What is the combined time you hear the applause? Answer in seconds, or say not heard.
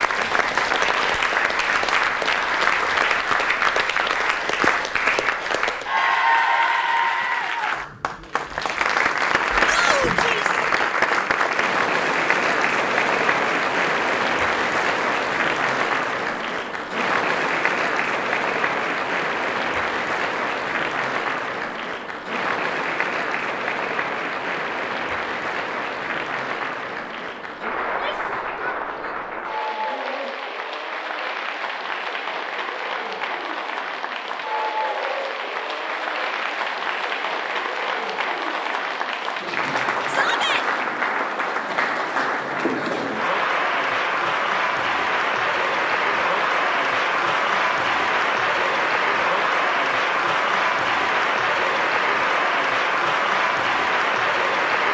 55 s.